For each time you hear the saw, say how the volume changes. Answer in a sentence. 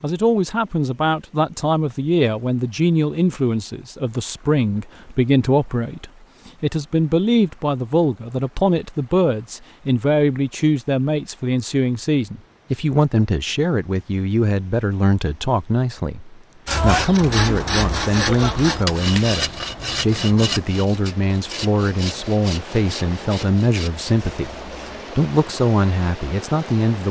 The saw can be heard from 16.6 to 25.1 s, getting quieter.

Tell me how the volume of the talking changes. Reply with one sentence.
The loudness of the talking stays about the same.